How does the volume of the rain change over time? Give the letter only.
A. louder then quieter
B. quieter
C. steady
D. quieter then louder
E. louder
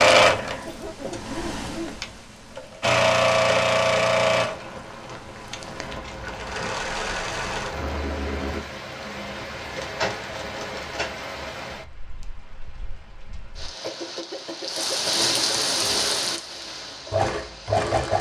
E.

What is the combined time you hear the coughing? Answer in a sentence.
You can hear the coughing for 3 seconds altogether.